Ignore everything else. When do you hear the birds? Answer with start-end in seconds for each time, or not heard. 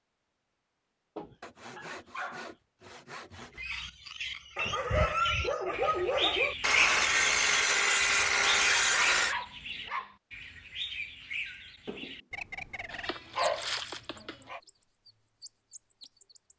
3.4-16.5.